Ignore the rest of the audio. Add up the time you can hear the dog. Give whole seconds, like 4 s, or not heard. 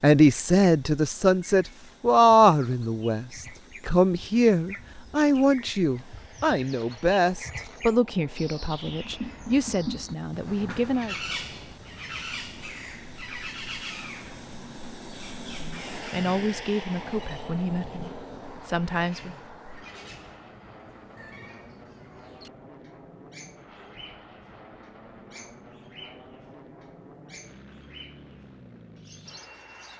not heard.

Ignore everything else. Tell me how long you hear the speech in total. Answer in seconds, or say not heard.
15 s.